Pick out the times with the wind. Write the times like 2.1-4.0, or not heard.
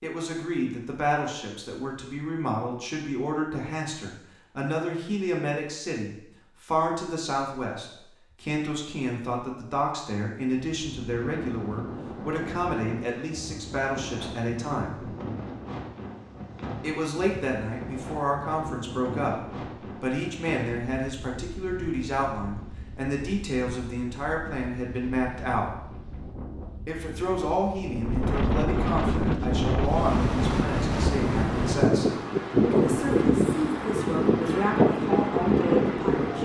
10.6-36.3.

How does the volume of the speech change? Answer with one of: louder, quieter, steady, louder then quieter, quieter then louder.
steady.